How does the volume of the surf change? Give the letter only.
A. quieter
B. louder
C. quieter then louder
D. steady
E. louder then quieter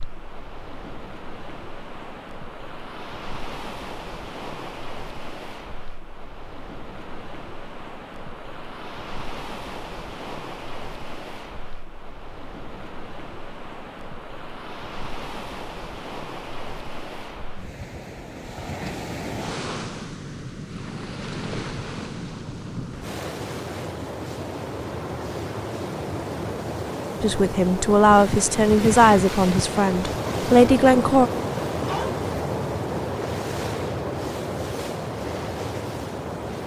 B.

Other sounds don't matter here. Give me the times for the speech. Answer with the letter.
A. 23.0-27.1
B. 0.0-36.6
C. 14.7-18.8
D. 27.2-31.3
D.